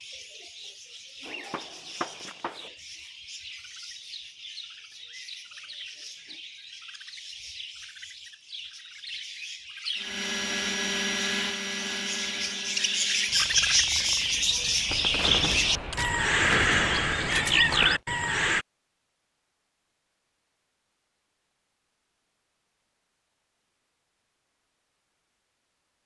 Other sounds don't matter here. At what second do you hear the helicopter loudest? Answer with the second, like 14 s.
11 s.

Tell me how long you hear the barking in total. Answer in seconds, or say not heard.
not heard.